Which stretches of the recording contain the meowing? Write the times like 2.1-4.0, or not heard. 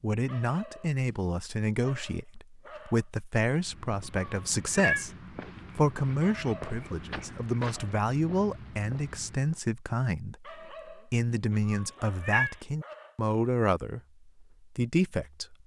4.2-5.0, 11.5-12.6.